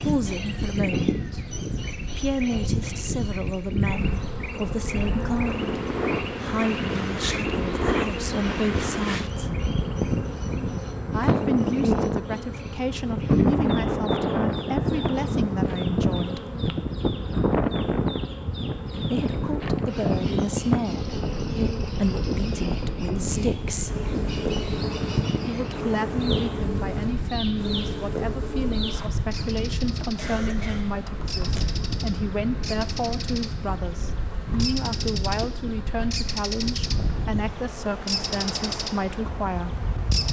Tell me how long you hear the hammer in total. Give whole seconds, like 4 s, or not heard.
not heard.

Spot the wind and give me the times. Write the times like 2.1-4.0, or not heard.
0.0-40.2.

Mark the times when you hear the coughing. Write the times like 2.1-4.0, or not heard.
30.1-31.6.